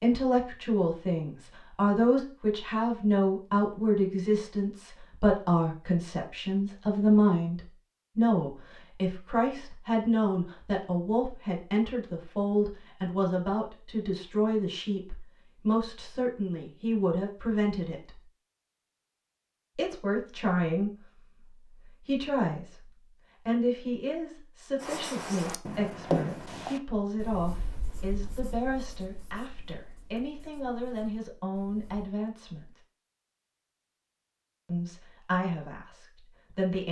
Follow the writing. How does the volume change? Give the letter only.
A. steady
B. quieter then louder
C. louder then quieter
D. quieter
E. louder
D.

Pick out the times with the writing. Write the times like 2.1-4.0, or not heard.
24.8-32.1.